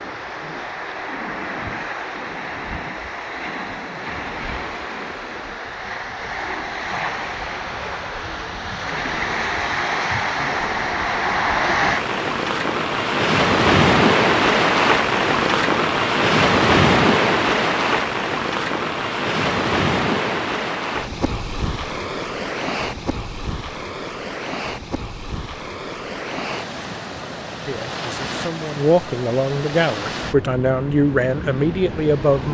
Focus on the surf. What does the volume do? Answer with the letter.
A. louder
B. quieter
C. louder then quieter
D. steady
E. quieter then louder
C.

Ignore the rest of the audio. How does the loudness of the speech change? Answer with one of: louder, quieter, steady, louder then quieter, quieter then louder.
louder.